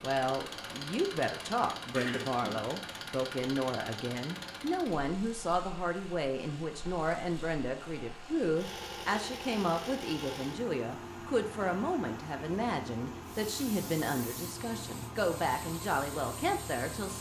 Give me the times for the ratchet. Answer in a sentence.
The ratchet can't be heard in this clip.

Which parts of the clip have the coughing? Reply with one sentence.
You can hear the coughing from 1.9 to 2.8 s.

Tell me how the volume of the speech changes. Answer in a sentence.
The volume of the speech stays about the same.